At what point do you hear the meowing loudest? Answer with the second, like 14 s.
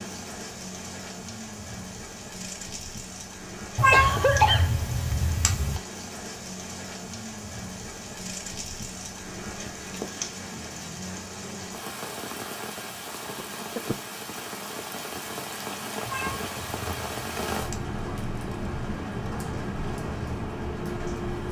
4 s.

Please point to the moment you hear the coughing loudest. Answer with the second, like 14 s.
4 s.